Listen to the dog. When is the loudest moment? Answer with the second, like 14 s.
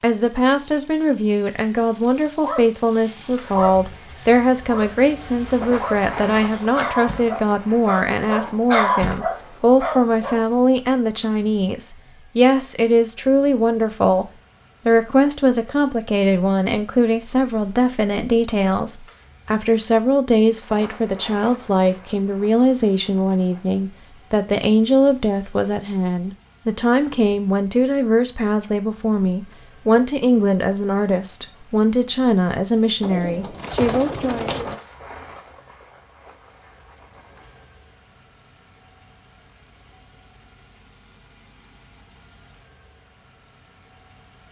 9 s.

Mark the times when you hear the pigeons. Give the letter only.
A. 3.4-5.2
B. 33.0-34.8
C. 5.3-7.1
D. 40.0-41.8
B.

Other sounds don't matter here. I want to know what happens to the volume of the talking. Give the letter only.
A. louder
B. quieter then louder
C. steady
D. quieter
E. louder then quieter
C.